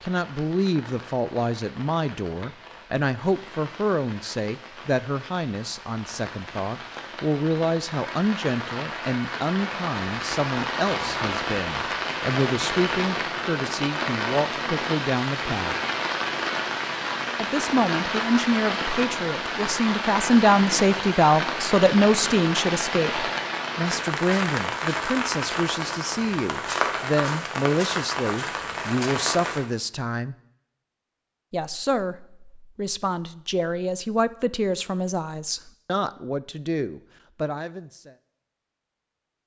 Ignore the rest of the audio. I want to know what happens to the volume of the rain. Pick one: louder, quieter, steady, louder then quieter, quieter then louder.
louder.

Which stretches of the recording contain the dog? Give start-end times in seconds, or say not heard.
not heard.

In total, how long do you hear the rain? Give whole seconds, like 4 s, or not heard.
30 s.